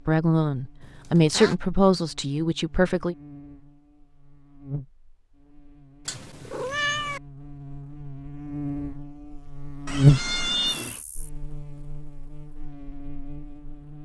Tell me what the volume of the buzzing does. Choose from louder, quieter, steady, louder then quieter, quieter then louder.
louder then quieter.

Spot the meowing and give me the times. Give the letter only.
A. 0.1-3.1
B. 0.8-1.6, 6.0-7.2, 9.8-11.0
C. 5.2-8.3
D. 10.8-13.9
B.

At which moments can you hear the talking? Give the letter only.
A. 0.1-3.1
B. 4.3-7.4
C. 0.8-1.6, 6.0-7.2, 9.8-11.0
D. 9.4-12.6
A.